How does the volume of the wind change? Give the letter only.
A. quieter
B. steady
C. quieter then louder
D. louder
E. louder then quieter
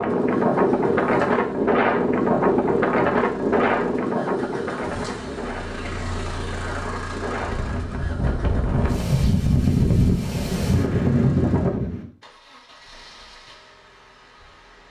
C.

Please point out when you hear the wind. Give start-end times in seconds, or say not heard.
0.0-12.1.